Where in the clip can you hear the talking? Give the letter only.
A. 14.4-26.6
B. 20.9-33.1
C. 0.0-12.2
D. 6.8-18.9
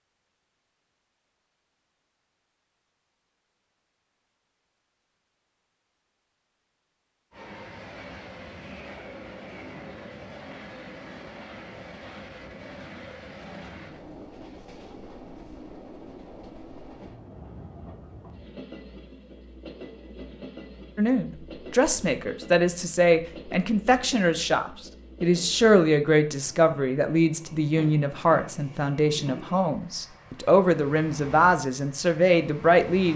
B.